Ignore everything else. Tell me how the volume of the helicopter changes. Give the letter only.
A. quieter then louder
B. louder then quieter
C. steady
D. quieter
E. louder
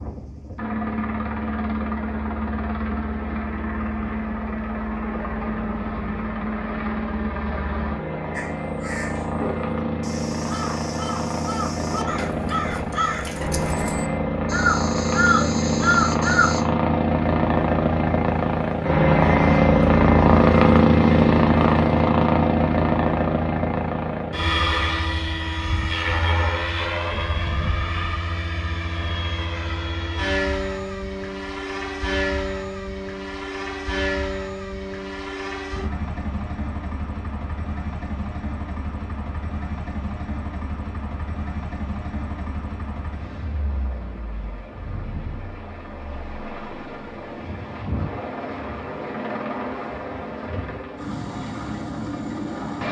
B.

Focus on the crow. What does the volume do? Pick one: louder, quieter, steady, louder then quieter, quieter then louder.
louder.